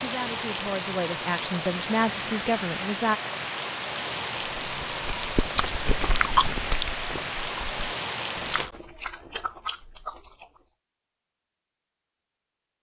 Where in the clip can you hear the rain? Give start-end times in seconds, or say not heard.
0.0-8.7.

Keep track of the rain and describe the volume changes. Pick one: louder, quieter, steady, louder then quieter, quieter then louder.
steady.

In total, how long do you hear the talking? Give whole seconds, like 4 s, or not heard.
3 s.